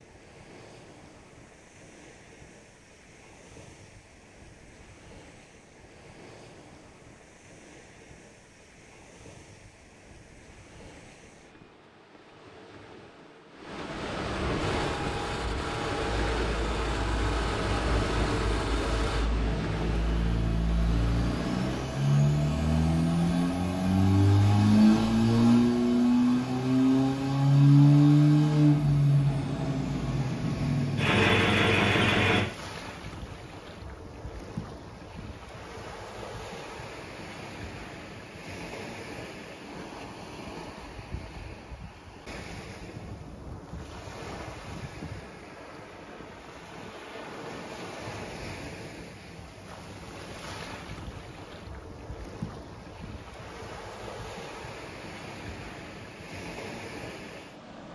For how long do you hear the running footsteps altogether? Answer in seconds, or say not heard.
not heard.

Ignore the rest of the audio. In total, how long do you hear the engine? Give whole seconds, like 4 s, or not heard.
18 s.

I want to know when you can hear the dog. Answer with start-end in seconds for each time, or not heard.
not heard.